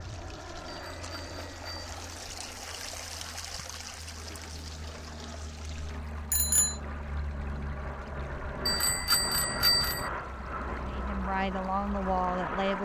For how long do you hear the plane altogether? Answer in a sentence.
The plane can be heard for 13 seconds in total.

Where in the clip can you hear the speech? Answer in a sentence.
The speech can be heard from 10.8 to 12.8 s.